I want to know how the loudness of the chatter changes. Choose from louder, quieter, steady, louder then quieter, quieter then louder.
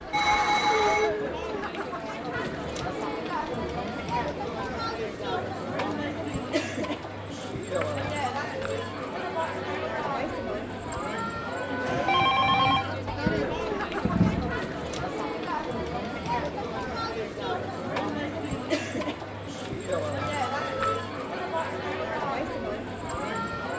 steady.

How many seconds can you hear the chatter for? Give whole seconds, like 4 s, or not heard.
24 s.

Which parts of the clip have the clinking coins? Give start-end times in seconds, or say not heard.
7.8-8.8, 13.2-14.6.